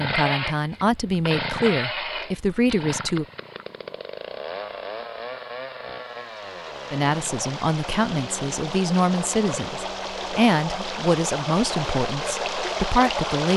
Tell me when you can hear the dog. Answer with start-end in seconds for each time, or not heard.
not heard.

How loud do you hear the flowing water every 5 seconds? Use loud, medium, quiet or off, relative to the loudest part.
off, medium, loud.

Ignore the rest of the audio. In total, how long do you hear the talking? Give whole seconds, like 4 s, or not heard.
10 s.